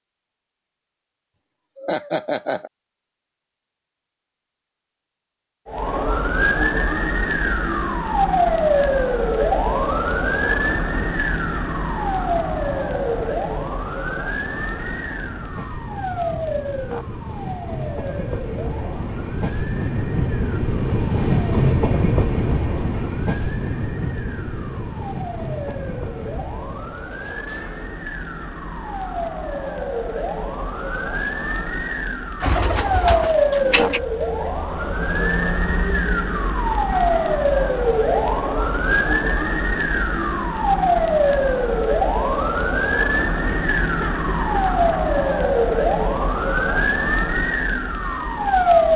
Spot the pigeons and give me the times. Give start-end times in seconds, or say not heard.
32.4-34.0.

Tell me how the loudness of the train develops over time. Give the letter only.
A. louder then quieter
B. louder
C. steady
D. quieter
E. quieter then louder
A.